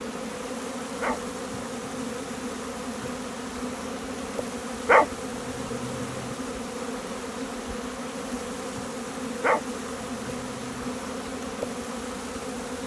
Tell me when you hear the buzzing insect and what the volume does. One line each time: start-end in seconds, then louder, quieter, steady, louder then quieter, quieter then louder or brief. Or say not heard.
0.0-12.8 steady.